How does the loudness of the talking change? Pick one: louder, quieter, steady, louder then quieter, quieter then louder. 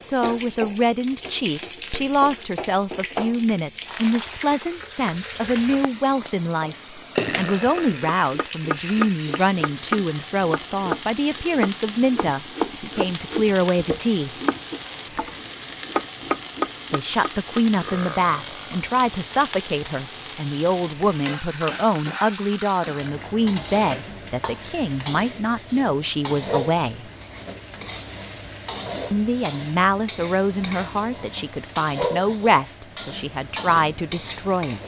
steady.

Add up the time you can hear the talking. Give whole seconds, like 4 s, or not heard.
30 s.